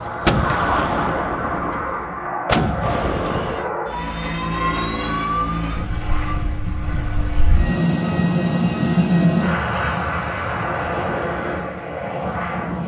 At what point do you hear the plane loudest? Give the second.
9 s.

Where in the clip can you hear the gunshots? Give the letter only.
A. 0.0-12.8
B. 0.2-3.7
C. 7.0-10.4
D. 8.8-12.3
B.